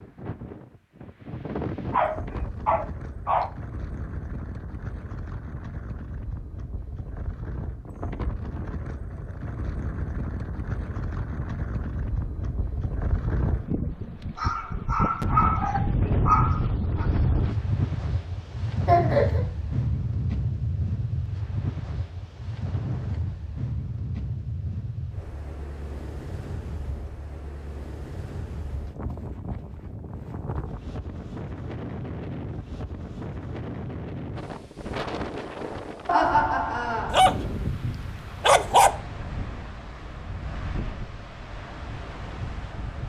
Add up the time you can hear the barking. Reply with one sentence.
The barking can be heard for 6 seconds in total.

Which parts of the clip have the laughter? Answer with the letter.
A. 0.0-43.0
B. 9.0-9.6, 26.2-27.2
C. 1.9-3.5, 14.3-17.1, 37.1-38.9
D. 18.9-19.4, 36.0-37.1
D.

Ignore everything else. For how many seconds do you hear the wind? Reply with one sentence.
The wind can be heard for 43 seconds in total.